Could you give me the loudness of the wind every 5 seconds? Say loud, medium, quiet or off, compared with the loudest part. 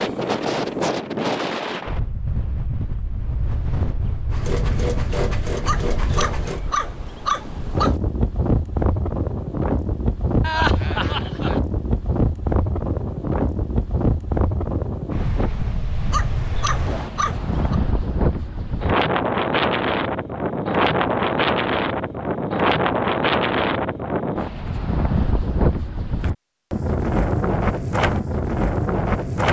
medium, medium, loud, loud, loud, loud.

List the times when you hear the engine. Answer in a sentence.
You can hear the engine from 4.3 to 6.6 s.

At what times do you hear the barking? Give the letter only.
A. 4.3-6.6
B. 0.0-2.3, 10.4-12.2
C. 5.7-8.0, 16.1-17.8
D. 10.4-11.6
C.